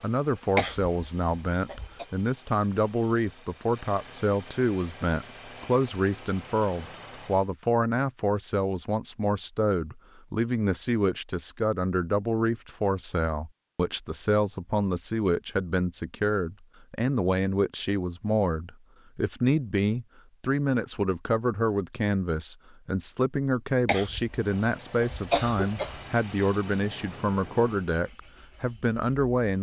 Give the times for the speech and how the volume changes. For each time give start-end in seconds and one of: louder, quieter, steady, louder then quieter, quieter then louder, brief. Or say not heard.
0.0-29.5 steady.